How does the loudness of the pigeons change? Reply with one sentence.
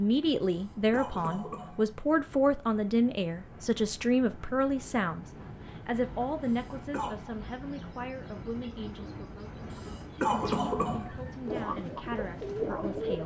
The volume of the pigeons goes up.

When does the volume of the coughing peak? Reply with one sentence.
The loudest moment of the coughing is at 10 seconds.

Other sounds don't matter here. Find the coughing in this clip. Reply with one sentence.
You can hear the coughing from 0.5 to 1.9 s, from 6.5 to 7.2 s and from 9.7 to 11.3 s.